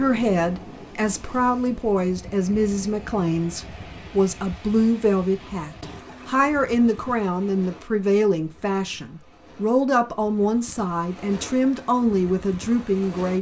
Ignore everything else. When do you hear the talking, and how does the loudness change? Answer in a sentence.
The talking can be heard from 0.0 to 13.3 s, at a steady volume.